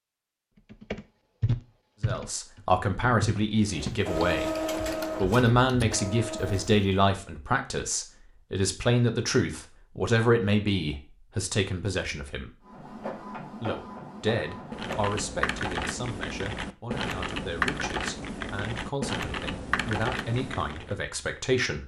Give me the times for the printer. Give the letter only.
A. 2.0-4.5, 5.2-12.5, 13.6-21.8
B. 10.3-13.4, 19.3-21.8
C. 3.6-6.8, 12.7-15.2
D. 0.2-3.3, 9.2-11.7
C.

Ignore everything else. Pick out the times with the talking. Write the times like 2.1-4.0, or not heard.
2.0-4.5, 5.2-12.5, 13.6-21.8.